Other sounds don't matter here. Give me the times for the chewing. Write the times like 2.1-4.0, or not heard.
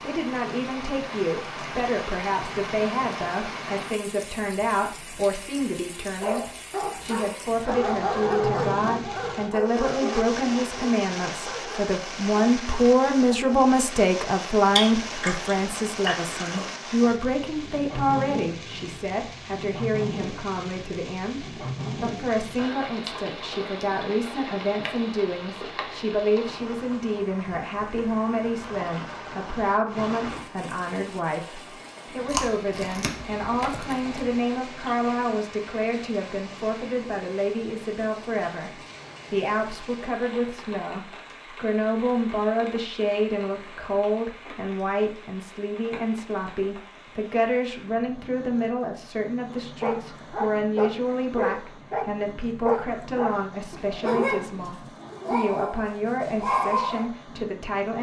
14.7-16.7, 32.2-34.4.